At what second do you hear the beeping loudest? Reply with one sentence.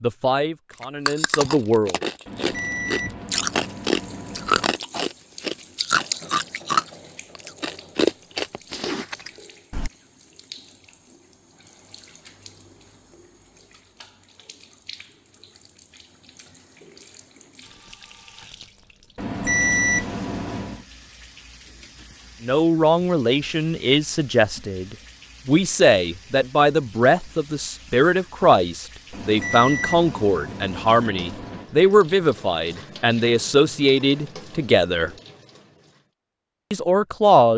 The loudest moment of the beeping is at 20 seconds.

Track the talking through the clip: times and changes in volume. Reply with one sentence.
The talking can be heard briefly from 0.0 to 1.9 s; from 22.4 to 35.1 s, at a steady volume; and briefly from 36.7 to 37.5 s.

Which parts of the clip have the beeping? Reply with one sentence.
The beeping can be heard from 2.2 to 4.8 s, from 19.1 to 20.8 s and from 29.1 to 31.6 s.